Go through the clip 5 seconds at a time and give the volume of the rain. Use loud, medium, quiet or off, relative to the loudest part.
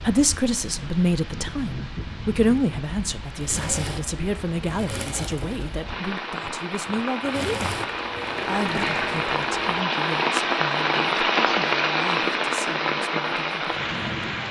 quiet, medium, loud.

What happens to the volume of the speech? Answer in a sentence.
The loudness of the speech goes down.